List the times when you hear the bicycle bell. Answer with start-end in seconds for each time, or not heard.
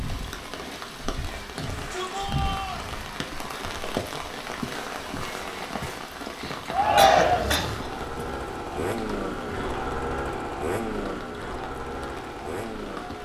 not heard.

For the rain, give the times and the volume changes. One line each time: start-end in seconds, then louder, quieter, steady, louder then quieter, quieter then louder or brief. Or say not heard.
0.0-13.2 quieter.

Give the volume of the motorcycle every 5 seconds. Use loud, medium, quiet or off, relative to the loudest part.
medium, loud, loud.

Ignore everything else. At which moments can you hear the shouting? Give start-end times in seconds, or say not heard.
1.5-2.9, 6.7-7.6.